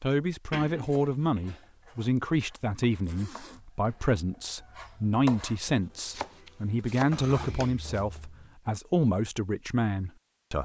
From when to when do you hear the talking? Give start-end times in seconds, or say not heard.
0.0-10.5.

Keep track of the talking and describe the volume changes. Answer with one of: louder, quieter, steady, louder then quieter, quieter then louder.
steady.